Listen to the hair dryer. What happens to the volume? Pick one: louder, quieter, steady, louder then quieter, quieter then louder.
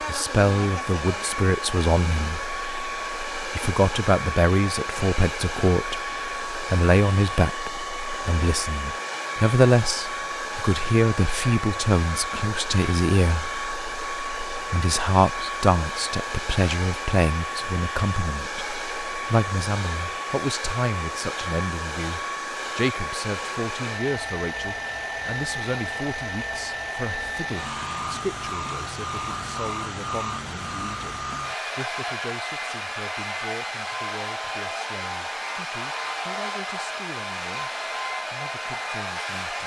steady.